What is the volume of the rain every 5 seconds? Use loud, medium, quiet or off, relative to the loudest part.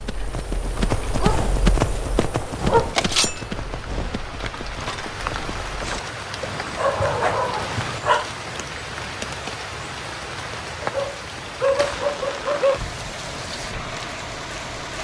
medium, loud, loud.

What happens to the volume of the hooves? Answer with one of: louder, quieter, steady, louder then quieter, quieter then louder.
quieter.